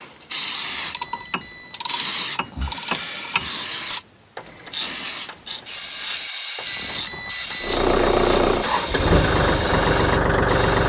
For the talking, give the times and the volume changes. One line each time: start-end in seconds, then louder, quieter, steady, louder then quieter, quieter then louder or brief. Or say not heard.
not heard.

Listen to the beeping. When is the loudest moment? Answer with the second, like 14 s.
7 s.